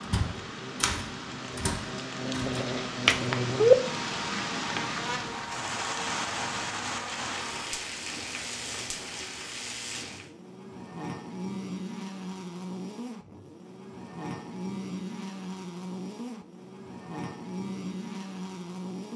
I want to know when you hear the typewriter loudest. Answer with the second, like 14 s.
1 s.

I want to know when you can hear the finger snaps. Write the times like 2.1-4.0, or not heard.
2.5-3.8.